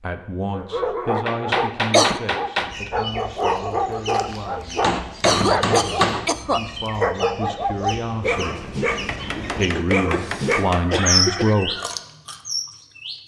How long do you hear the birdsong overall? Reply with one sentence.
You can hear the birdsong for 11 seconds altogether.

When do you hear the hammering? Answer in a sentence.
The hammering can be heard from 0.8 to 2.9 s, from 4.8 to 6.3 s and from 8.9 to 10.9 s.